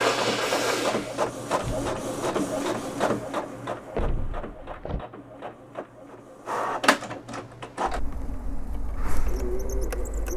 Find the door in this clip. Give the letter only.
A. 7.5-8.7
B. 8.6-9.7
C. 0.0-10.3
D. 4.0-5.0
D.